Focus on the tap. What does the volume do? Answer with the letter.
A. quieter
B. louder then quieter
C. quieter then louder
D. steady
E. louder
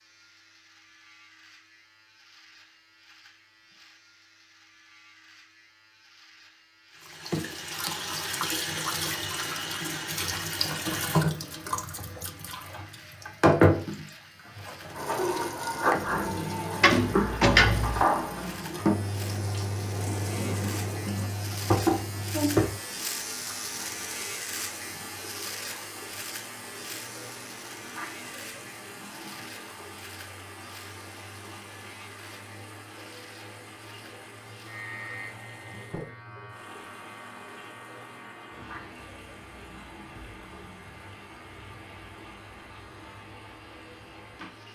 A.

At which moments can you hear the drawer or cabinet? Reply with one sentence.
The drawer or cabinet can be heard from 16.8 to 18.1 s.